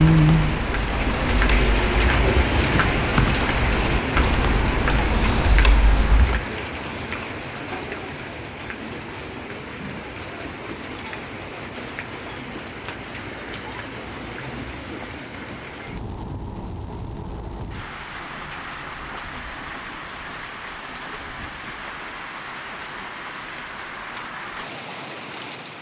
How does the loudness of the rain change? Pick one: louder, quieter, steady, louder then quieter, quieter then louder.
quieter.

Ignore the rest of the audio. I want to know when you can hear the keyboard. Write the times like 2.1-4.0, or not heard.
0.0-6.5.